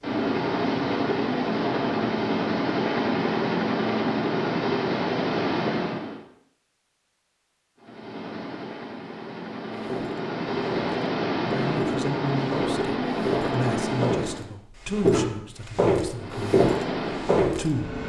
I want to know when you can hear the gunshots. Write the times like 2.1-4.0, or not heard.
not heard.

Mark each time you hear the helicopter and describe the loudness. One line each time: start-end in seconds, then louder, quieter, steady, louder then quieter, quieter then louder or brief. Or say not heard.
0.0-6.2 steady
7.8-14.4 louder
16.1-18.0 brief.